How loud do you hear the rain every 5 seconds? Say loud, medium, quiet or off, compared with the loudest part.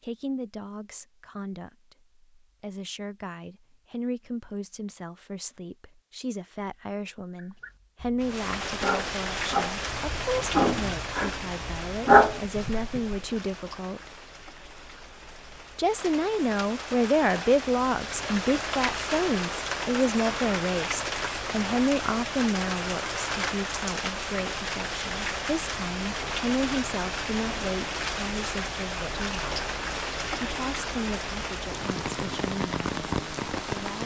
off, loud, medium, loud, loud, loud, loud.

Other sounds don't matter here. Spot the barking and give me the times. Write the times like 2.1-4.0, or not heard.
7.3-13.2.